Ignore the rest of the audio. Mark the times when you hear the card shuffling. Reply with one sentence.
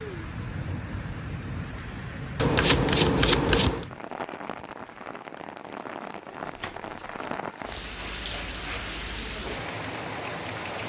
The card shuffling can be heard from 2.4 to 3.9 s and from 6.5 to 7.2 s.